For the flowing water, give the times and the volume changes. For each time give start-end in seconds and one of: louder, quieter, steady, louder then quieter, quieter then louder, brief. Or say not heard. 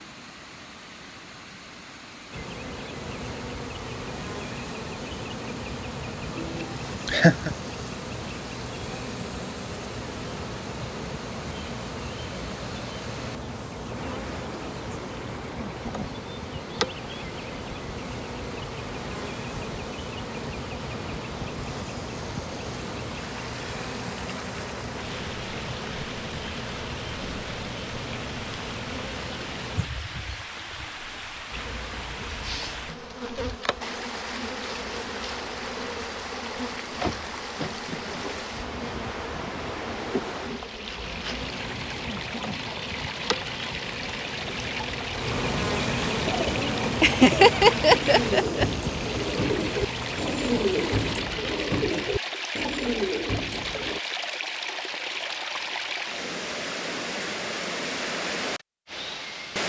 0.0-59.6 louder.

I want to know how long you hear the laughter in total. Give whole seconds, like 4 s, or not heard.
3 s.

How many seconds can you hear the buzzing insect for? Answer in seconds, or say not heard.
49 s.